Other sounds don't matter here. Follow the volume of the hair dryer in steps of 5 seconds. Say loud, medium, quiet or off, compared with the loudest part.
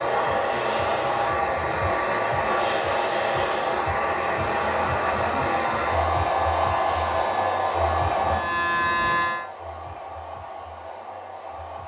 loud, loud, quiet.